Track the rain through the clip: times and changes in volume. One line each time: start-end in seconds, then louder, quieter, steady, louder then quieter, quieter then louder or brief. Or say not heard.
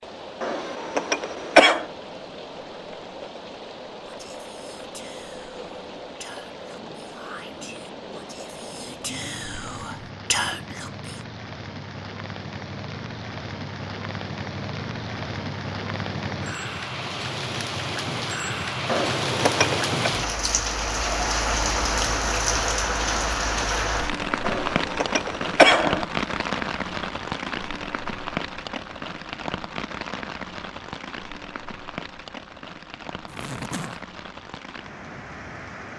0.0-35.9 louder then quieter.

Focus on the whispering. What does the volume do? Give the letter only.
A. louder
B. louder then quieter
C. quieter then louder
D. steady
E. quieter
A.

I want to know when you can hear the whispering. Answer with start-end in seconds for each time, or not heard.
4.0-11.2.